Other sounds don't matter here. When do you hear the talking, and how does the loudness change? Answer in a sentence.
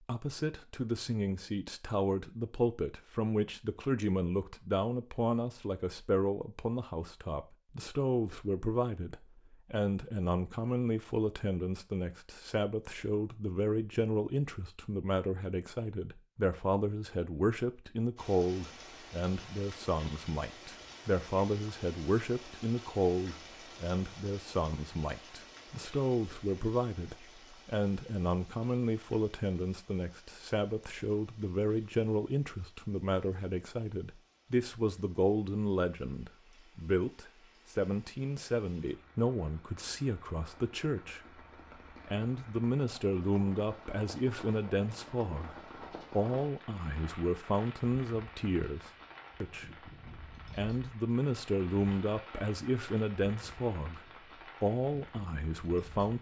The talking can be heard from 0.0 to 56.1 s, at a steady volume.